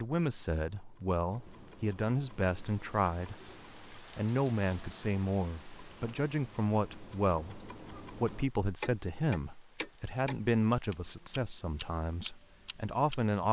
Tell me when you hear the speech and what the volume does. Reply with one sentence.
The speech can be heard from 0.0 to 13.4 s, at a steady volume.